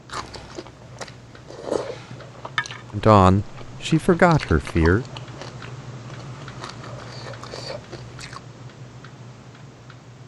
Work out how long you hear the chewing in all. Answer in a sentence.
The chewing can be heard for 8 seconds in total.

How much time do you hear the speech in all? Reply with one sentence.
The speech can be heard for 2 seconds in total.